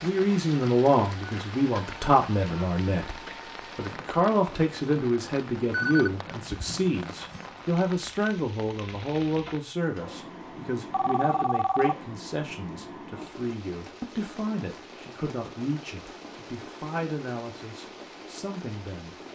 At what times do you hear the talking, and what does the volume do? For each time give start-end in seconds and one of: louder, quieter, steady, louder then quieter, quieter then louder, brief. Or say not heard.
0.0-19.2 quieter.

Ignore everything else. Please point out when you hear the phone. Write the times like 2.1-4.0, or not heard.
5.7-7.5, 10.9-11.9.